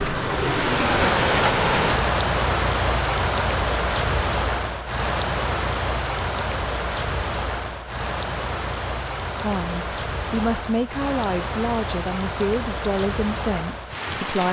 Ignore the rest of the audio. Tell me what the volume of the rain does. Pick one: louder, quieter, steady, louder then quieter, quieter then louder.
quieter.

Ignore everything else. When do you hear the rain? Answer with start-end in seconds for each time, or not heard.
0.0-14.4.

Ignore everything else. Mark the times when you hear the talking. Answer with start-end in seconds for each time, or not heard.
9.4-14.4.